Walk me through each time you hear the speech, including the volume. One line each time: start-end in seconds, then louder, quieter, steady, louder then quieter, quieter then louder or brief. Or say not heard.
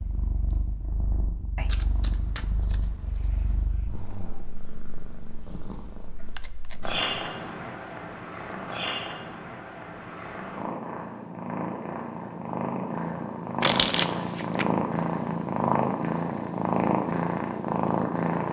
not heard.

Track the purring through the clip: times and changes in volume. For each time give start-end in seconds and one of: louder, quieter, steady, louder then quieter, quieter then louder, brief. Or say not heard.
0.0-18.4 louder.